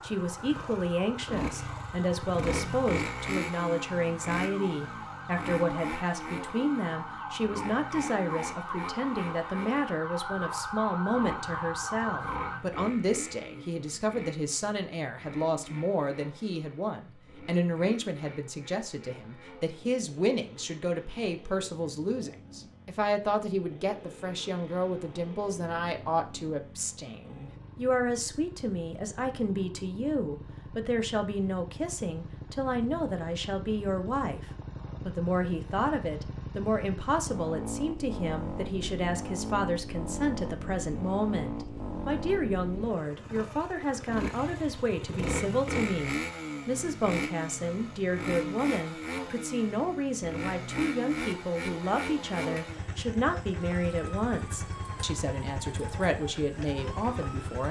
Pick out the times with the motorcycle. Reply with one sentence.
You can hear the motorcycle from 0.0 to 57.6 s.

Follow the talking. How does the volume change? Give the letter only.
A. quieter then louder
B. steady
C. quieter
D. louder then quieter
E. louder
B.